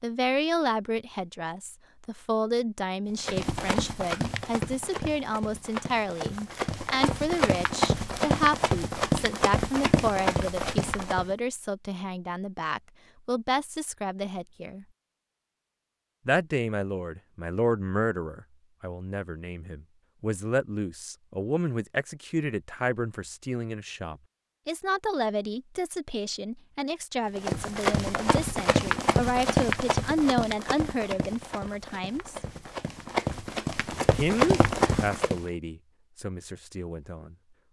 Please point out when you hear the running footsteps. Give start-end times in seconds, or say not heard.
3.2-11.3, 27.4-35.5.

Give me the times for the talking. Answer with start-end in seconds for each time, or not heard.
0.0-14.8, 16.2-32.4, 34.0-37.6.